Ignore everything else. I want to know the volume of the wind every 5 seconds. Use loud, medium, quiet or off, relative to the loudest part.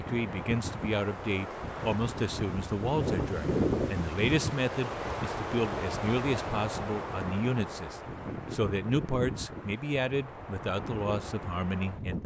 loud, loud, medium.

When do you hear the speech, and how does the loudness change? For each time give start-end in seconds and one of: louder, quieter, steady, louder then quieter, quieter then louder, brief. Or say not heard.
0.0-12.2 steady.